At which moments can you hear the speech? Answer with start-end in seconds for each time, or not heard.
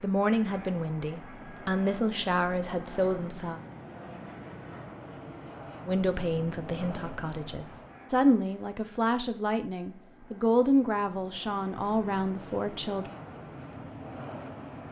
0.0-3.6, 5.8-13.1.